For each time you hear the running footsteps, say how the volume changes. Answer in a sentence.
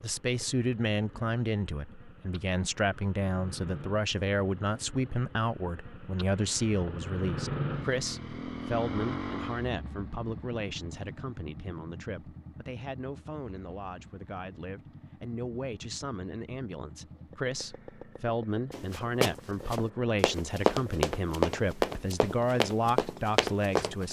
You can hear the running footsteps from 18.7 to 24.0 s, at a steady volume.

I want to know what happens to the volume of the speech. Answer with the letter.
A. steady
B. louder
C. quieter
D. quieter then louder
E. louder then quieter
D.